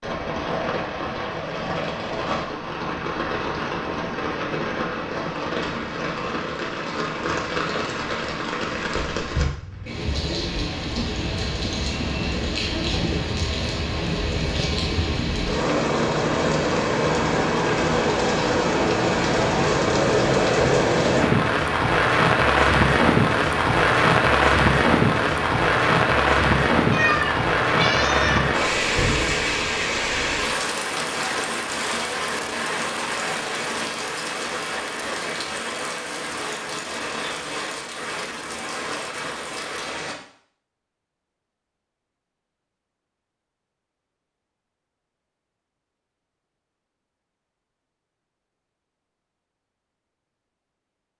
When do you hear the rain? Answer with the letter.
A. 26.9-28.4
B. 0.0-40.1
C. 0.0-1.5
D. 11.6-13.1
B.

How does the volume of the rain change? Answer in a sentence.
The volume of the rain goes up, then down.